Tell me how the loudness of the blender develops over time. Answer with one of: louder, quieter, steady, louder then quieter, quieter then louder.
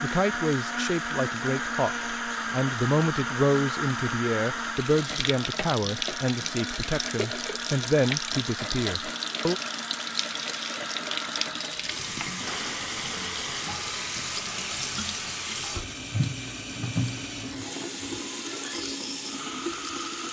quieter.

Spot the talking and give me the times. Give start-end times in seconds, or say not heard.
0.0-9.6.